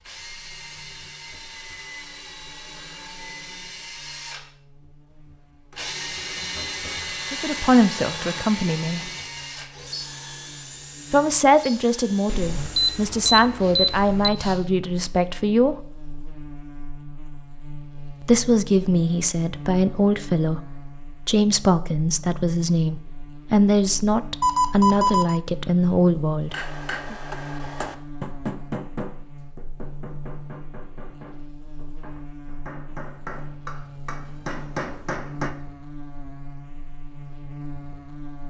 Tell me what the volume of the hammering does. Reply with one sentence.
The loudness of the hammering goes down, then up.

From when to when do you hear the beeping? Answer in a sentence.
You can hear the beeping from 12.2 to 14.3 s and from 24.4 to 25.4 s.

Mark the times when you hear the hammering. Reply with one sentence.
The hammering can be heard from 26.5 to 35.5 s.